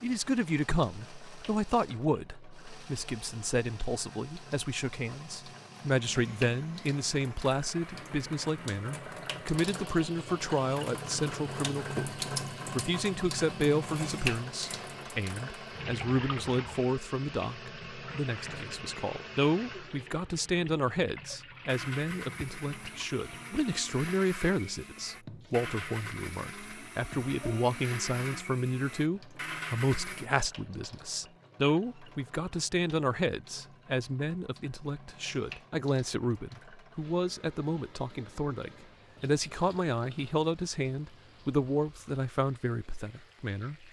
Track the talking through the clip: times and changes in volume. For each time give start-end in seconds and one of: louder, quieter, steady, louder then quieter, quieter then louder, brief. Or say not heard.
0.0-43.8 steady.